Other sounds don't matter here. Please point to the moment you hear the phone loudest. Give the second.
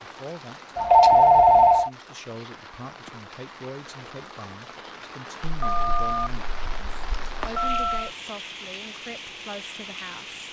1 s.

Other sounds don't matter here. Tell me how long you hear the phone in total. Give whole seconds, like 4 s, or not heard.
4 s.